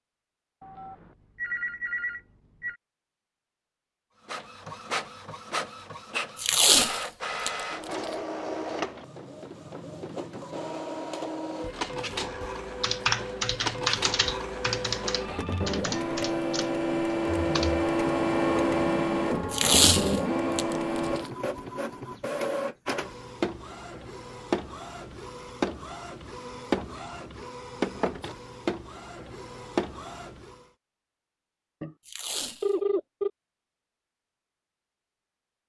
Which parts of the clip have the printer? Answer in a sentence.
You can hear the printer from 4.2 to 30.6 s.